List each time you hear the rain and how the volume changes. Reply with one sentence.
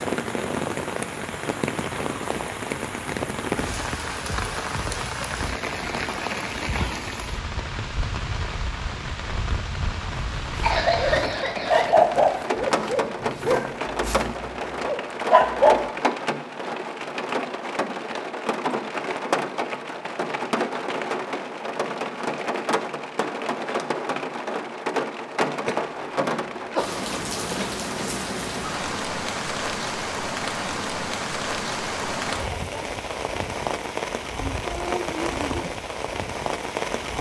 You can hear the rain from 0.0 to 37.1 s, at a steady volume.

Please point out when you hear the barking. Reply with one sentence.
You can hear the barking from 10.3 to 15.8 s.